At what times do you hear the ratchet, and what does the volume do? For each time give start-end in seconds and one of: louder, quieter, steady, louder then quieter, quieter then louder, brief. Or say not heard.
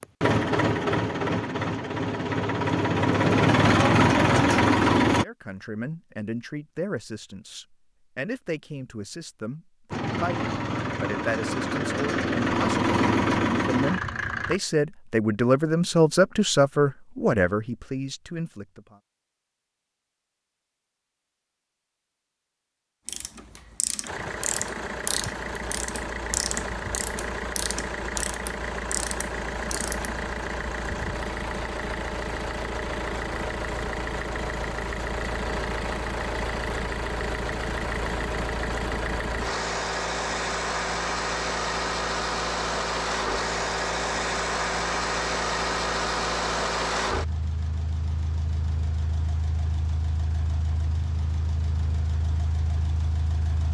23.1-30.1 steady.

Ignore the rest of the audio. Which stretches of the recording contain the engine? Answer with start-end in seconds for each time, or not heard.
0.0-5.2, 9.9-14.6, 24.1-53.6.